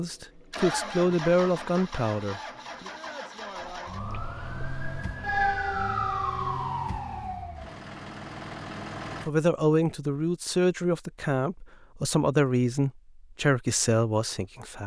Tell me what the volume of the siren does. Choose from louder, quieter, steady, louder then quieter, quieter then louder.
louder then quieter.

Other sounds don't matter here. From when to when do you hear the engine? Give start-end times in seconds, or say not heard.
0.0-9.3.